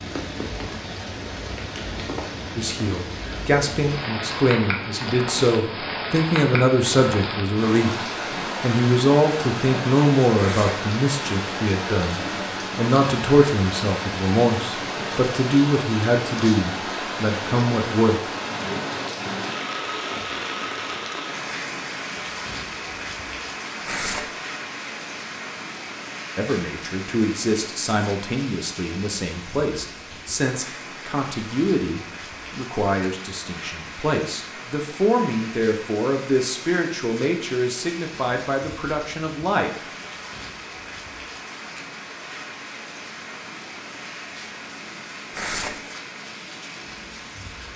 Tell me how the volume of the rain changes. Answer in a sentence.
The volume of the rain goes down.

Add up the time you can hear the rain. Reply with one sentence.
You can hear the rain for 48 seconds altogether.